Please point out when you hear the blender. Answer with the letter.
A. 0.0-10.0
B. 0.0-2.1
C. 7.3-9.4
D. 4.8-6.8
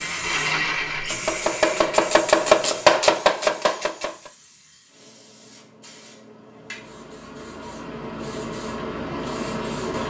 B.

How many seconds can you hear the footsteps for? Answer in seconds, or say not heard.
not heard.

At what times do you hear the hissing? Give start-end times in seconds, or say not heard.
0.0-10.0.